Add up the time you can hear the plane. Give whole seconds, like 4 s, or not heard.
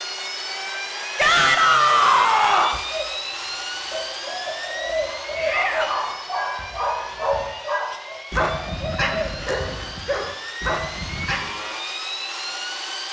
13 s.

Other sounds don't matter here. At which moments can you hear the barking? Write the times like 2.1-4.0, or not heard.
5.0-11.5.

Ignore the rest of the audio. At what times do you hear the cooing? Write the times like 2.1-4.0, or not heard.
2.9-9.5.